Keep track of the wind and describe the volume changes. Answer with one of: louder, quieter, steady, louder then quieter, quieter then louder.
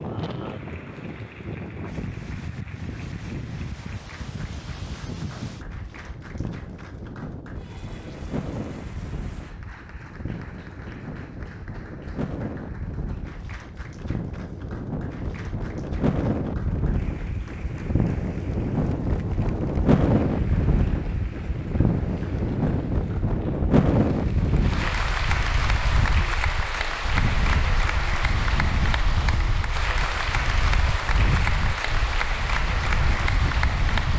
louder then quieter.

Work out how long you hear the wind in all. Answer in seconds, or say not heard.
34 s.